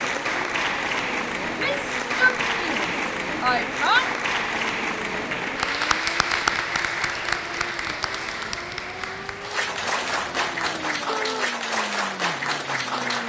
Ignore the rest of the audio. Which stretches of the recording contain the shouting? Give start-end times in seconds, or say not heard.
1.4-4.1, 11.1-11.5.